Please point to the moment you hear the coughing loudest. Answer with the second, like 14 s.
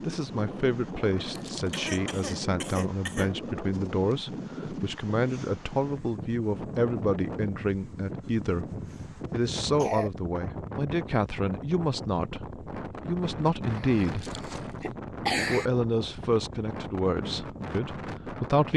15 s.